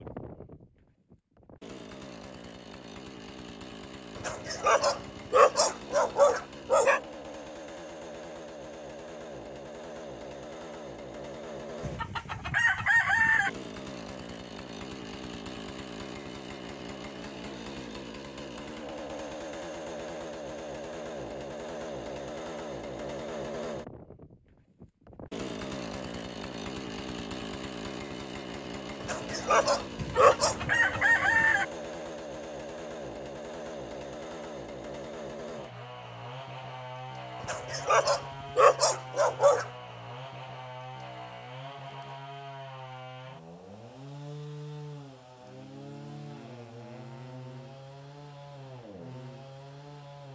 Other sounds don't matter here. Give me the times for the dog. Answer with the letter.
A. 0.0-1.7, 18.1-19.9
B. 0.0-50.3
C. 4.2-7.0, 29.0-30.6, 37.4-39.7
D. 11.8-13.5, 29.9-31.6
C.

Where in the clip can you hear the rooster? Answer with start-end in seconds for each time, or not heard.
11.8-13.5, 29.9-31.6.